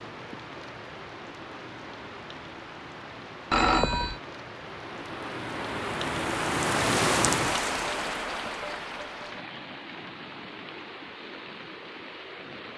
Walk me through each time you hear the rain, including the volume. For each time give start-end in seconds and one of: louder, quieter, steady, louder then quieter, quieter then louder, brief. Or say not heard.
0.0-12.7 louder then quieter.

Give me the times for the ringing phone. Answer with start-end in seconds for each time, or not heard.
3.5-4.2.